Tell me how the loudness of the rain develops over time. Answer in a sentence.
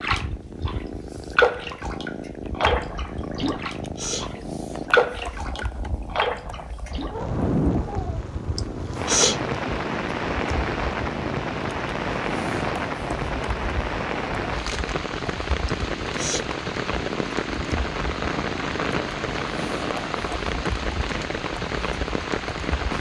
The volume of the rain stays about the same.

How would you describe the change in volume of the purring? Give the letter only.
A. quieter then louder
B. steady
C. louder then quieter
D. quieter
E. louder
B.